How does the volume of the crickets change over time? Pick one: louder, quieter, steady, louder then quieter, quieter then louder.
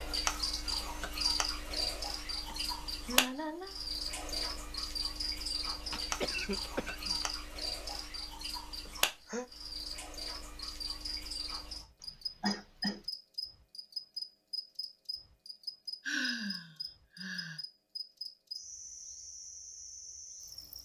quieter.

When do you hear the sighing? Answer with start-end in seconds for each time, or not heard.
2.5-3.8, 8.8-9.4, 16.1-17.6.